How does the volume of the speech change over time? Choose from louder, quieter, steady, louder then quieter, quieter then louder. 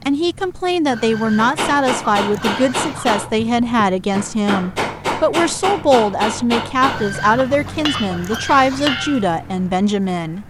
steady.